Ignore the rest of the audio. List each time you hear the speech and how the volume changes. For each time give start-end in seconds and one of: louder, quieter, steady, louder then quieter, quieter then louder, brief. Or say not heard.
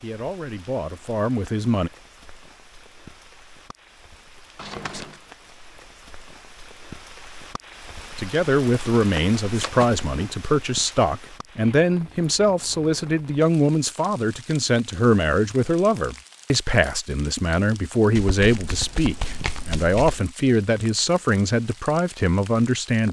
0.0-1.9 brief
8.2-23.0 steady.